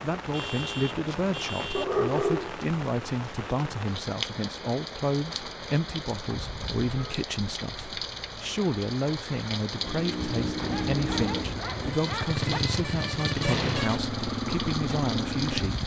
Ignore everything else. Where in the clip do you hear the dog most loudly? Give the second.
2 s.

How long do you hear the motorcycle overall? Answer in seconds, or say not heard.
6 s.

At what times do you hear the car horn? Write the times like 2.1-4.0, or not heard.
0.3-1.9, 6.3-7.2, 11.7-14.0.